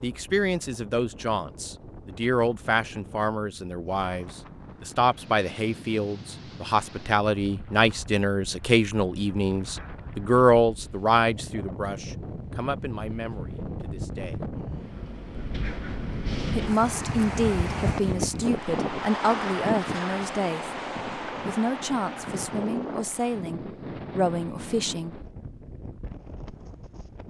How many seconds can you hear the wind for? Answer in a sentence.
The wind can be heard for 27 seconds in total.